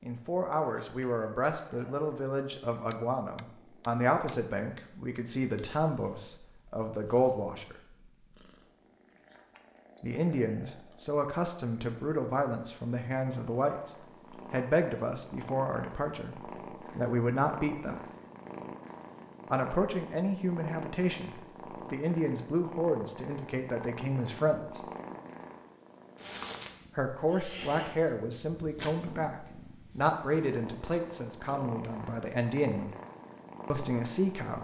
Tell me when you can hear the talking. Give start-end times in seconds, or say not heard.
0.0-7.8, 10.0-18.0, 19.5-24.8, 26.9-33.0, 33.7-34.5.